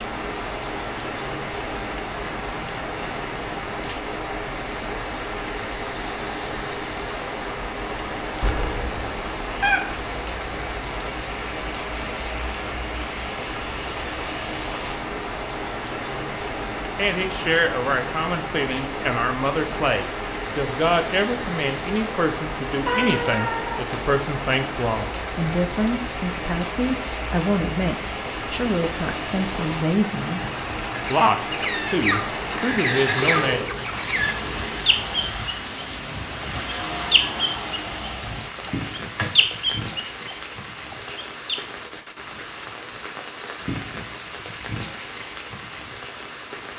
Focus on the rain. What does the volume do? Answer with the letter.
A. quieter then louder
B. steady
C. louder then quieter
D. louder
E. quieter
B.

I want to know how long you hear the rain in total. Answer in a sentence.
The rain can be heard for 47 seconds in total.